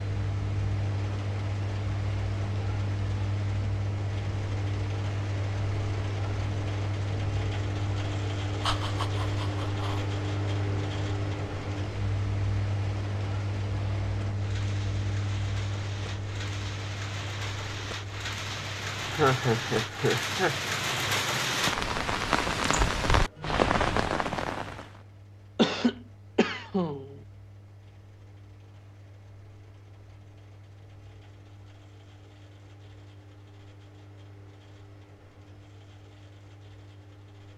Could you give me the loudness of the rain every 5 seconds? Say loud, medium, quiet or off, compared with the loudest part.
quiet, quiet, quiet, medium, loud, off, off, off.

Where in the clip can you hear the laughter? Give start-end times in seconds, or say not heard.
8.6-10.1, 19.1-20.6, 25.6-27.1.